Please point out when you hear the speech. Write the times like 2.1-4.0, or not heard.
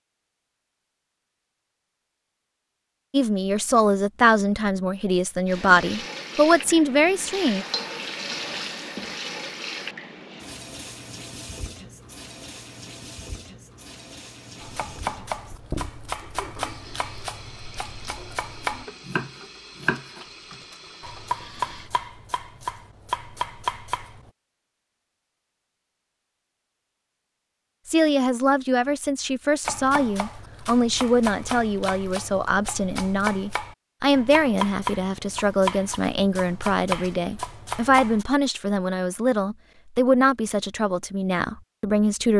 3.1-7.7, 27.9-42.3.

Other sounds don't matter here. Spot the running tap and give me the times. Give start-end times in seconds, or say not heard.
5.5-21.9.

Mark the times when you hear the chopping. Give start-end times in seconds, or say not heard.
14.6-24.3, 29.6-38.2.